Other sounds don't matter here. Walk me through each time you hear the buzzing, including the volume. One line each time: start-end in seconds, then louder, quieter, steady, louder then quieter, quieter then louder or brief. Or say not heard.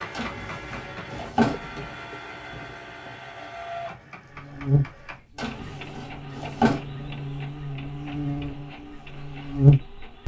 4.3-10.2 quieter then louder.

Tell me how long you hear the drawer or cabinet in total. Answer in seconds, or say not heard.
4 s.